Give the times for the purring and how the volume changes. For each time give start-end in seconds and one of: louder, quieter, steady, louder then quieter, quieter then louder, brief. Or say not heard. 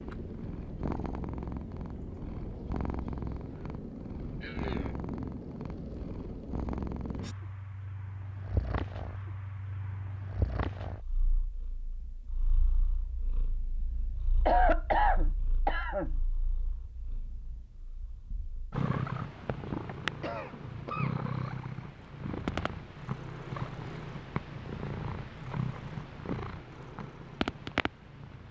0.0-28.4 quieter then louder.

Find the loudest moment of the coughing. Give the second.
15 s.